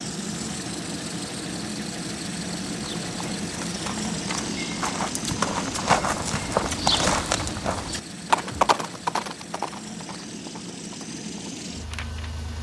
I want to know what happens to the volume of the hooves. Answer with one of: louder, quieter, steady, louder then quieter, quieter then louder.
louder then quieter.